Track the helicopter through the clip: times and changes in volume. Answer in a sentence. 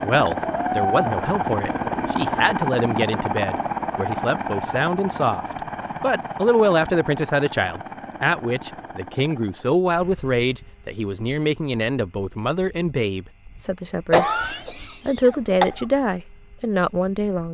The helicopter can be heard from 0.0 to 17.5 s, getting quieter.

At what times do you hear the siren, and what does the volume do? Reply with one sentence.
The siren can't be heard in this clip.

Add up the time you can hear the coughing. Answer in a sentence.
The coughing can be heard for 2 seconds in total.